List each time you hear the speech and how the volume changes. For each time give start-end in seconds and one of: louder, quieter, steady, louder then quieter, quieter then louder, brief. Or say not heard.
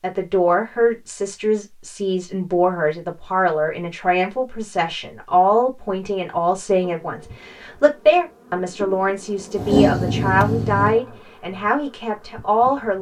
0.0-12.9 steady.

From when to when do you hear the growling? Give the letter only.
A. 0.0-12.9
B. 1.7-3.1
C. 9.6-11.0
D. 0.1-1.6
C.